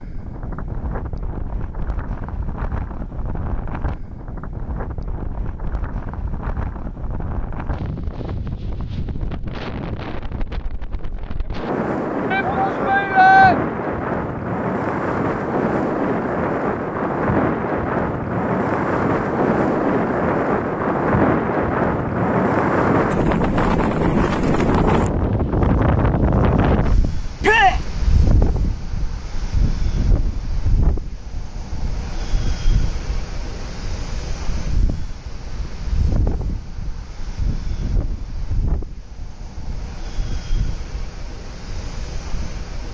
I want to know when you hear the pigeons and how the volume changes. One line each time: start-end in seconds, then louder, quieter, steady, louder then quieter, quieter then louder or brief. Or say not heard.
not heard.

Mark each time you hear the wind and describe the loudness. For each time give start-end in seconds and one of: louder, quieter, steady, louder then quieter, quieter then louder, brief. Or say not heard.
0.0-42.8 louder then quieter.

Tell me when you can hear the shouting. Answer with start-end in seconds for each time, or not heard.
12.3-13.6, 27.4-27.8.